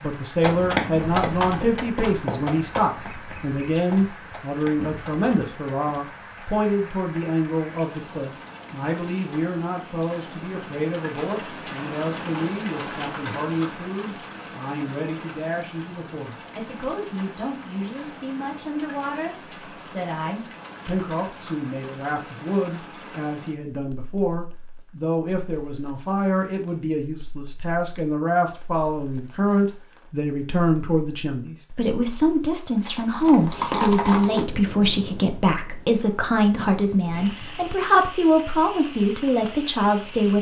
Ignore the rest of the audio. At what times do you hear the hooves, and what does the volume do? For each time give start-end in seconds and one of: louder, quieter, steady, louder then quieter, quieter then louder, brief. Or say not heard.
0.4-6.0 quieter
32.8-34.5 brief.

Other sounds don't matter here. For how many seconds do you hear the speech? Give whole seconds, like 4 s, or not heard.
40 s.